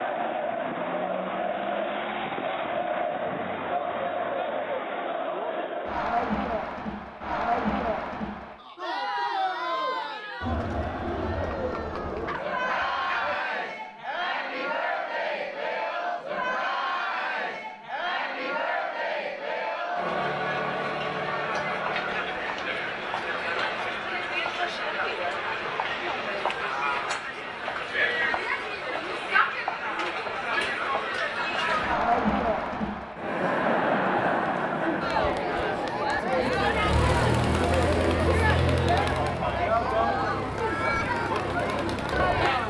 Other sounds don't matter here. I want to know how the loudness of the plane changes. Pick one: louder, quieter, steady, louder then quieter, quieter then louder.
quieter.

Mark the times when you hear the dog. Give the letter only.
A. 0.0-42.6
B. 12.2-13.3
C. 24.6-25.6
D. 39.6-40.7
B.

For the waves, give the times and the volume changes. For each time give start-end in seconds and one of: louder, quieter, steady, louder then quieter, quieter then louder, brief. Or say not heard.
not heard.